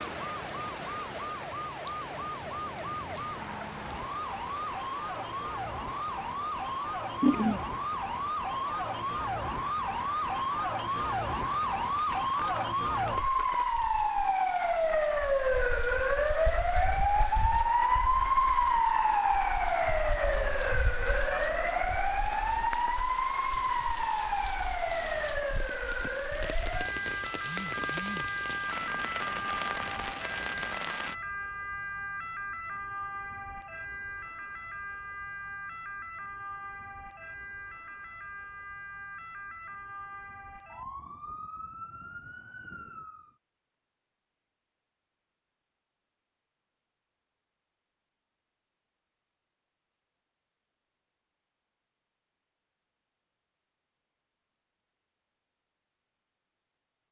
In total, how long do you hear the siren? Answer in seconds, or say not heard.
43 s.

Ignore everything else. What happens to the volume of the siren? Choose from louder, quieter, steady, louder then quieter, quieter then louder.
louder then quieter.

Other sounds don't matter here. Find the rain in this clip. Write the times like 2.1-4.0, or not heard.
0.0-31.1.